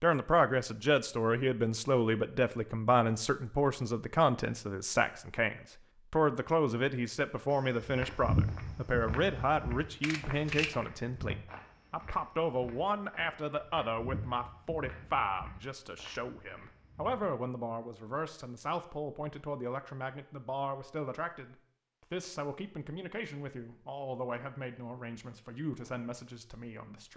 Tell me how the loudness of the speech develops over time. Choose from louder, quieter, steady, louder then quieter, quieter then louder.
quieter.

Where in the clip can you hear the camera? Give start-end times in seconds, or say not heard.
10.0-10.8.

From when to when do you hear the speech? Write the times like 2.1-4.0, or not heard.
0.0-27.1.